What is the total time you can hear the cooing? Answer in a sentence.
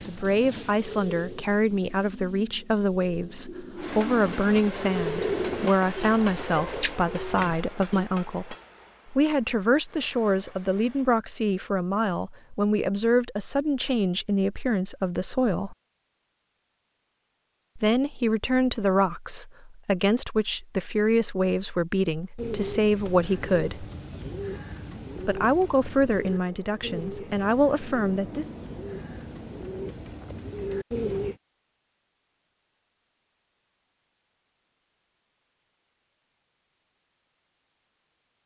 You can hear the cooing for 17 seconds altogether.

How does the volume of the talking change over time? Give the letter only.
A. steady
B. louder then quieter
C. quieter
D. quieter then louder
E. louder
A.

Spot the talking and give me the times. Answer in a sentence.
You can hear the talking from 0.1 to 15.8 s, from 17.8 to 23.9 s and from 25.2 to 28.5 s.